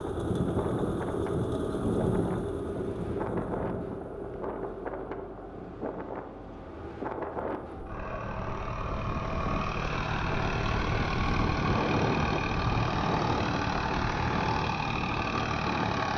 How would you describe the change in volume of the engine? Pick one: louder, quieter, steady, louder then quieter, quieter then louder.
quieter then louder.